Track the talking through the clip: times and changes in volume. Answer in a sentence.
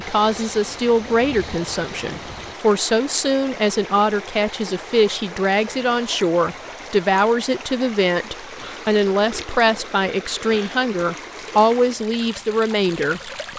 You can hear the talking from 0.0 to 13.5 s, at a steady volume.